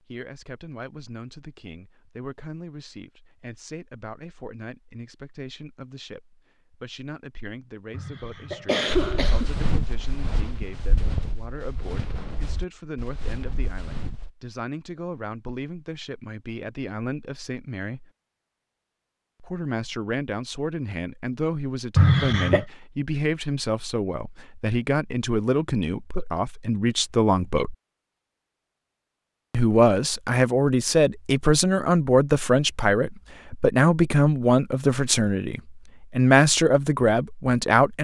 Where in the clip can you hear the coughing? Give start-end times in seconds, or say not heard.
7.9-9.6, 21.9-22.6.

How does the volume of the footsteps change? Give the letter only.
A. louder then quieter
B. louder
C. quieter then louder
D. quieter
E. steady
D.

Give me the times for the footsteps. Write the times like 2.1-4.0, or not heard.
8.8-14.3.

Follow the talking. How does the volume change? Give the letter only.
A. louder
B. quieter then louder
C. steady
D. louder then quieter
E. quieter
A.